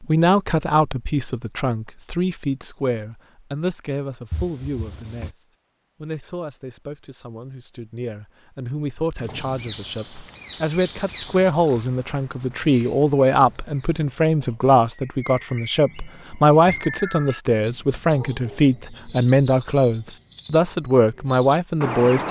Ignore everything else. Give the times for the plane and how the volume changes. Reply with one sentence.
You can't hear the plane here.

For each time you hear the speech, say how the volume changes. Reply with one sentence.
The speech can be heard from 0.0 to 22.2 s, getting quieter then louder.